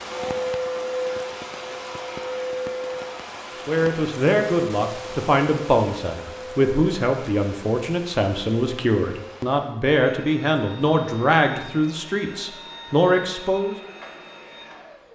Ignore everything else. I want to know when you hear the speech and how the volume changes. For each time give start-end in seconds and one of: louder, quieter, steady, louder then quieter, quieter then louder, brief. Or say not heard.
3.6-13.8 steady.